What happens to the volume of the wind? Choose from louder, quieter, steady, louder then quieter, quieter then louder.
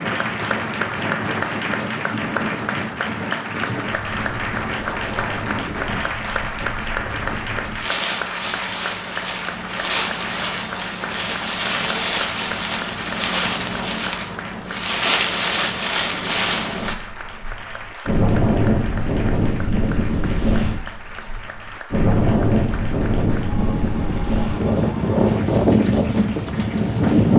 louder.